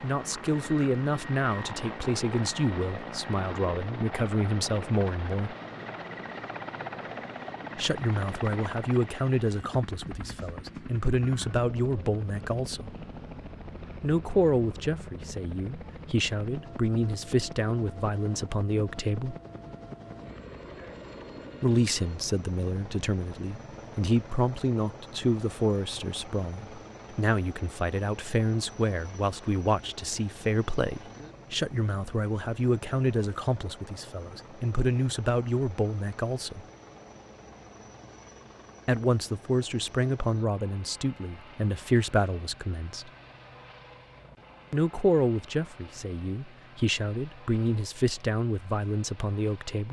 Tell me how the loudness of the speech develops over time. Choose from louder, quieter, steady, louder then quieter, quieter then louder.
steady.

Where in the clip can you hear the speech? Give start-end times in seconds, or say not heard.
0.0-5.5, 7.8-12.9, 14.0-19.4, 21.6-36.6, 38.9-43.1, 44.7-49.8.